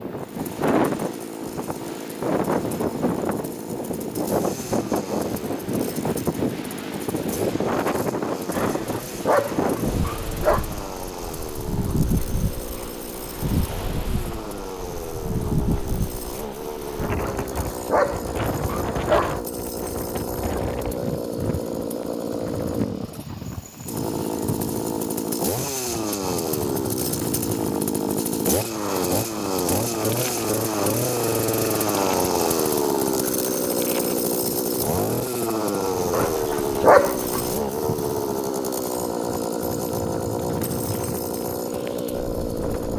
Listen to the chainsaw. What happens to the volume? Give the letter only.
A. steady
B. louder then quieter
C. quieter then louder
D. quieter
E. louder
E.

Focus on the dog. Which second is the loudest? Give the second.
37 s.